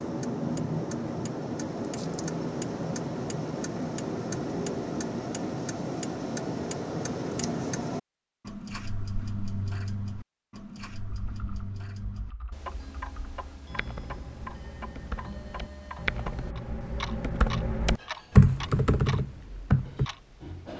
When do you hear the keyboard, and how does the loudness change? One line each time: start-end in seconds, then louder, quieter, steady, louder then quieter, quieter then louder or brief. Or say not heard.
11.1-20.1 louder.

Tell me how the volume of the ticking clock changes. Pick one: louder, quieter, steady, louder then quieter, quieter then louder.
quieter.